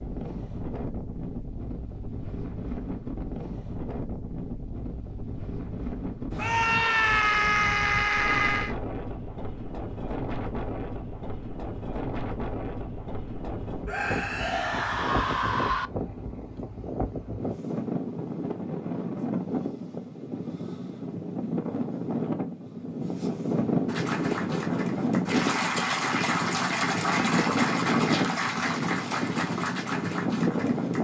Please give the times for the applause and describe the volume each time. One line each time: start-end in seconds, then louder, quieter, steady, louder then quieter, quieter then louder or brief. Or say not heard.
23.9-30.9 louder then quieter.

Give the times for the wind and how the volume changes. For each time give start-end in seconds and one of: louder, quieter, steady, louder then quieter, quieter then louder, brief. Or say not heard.
0.0-30.9 louder.